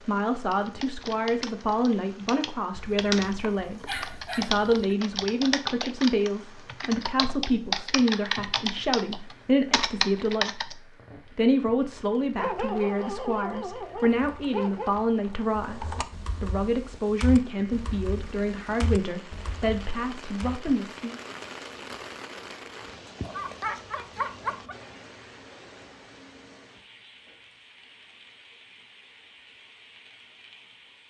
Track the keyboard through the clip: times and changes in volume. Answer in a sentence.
The keyboard can be heard from 0.5 to 10.8 s, getting louder; and from 14.2 to 20.8 s, getting louder then quieter.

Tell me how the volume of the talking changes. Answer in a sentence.
The loudness of the talking stays about the same.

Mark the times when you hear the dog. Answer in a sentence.
The dog can be heard from 2.8 to 5.0 s, from 12.3 to 14.9 s and from 23.2 to 24.8 s.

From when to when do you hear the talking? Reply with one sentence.
The talking can be heard from 0.1 to 21.1 s.